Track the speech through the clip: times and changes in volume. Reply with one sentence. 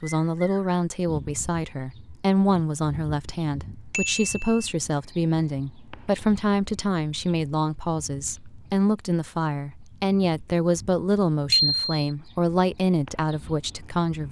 The speech can be heard from 0.0 to 14.2 s, at a steady volume.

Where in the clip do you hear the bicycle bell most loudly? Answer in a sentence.
The volume of the bicycle bell peaks at 12 seconds.